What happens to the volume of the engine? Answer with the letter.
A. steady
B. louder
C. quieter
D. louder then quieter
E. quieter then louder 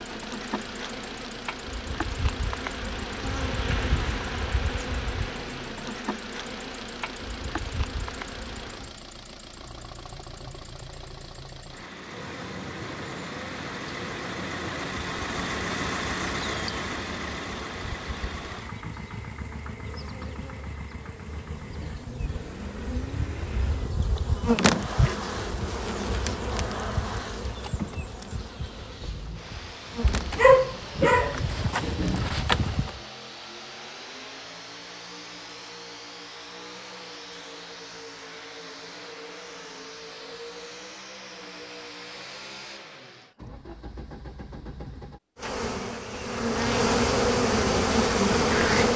D.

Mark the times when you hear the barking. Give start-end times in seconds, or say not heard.
30.0-32.9.